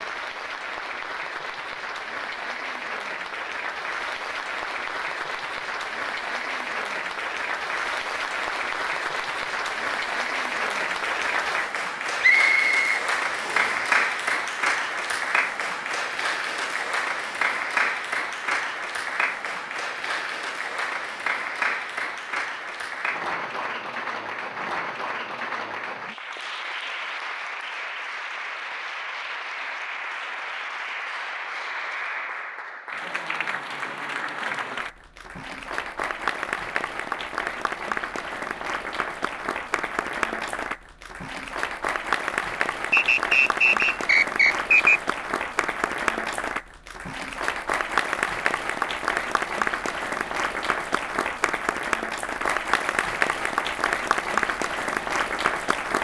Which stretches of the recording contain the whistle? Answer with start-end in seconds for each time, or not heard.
12.2-13.8, 42.9-45.0.